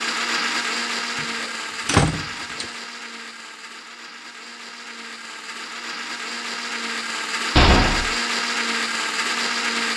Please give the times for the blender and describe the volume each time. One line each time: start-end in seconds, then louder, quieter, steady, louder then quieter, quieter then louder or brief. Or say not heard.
0.0-9.9 quieter then louder.